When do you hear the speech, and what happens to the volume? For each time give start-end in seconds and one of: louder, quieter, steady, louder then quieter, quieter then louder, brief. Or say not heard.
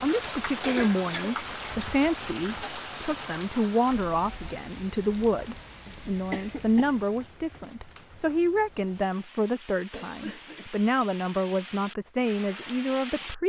0.0-13.4 steady.